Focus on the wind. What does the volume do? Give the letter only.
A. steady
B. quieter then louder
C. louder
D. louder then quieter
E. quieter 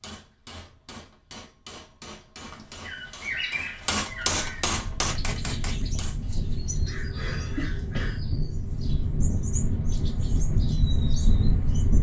C.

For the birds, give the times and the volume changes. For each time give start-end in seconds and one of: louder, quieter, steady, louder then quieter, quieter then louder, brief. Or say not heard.
2.4-11.9 steady.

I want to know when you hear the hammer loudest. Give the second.
4 s.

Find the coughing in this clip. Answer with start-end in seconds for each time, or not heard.
6.2-8.2.